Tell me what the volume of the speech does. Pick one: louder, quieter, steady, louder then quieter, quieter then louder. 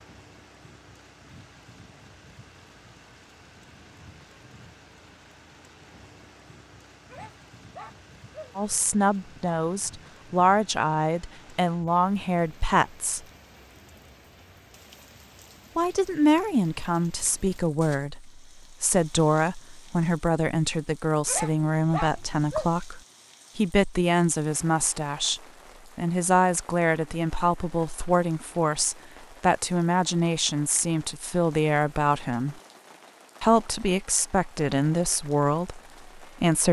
steady.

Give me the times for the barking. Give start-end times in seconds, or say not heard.
7.1-9.6, 21.2-22.7.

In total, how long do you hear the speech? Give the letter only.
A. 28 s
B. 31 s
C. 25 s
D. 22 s
C.